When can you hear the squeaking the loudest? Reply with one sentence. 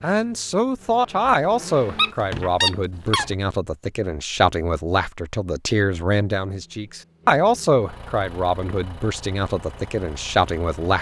The volume of the squeaking peaks at 3 seconds.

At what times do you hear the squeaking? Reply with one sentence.
You can hear the squeaking from 1.2 to 3.4 s.